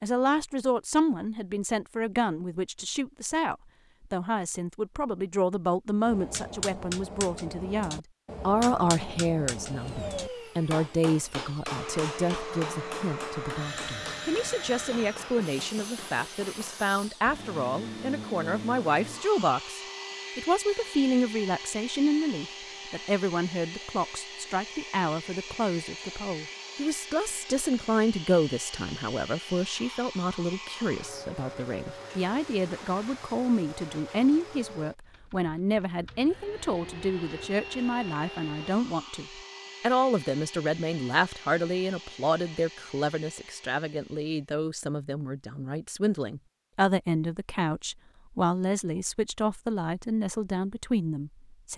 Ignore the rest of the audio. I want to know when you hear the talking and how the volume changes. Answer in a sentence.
The talking can be heard from 0.0 to 51.7 s, at a steady volume.